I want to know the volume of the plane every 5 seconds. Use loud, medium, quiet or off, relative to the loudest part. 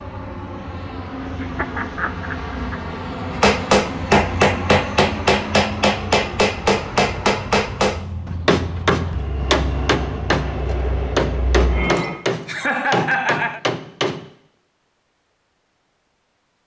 loud, loud, loud, off.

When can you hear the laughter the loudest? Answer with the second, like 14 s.
13 s.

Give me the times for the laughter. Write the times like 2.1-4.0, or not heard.
1.4-2.8, 11.8-13.6.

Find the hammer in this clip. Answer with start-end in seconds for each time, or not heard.
3.4-14.2.